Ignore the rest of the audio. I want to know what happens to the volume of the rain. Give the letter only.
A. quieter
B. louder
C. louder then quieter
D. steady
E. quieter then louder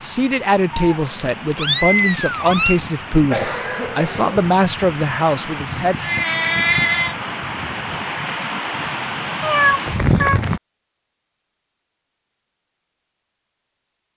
B.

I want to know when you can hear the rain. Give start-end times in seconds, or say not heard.
0.0-10.6.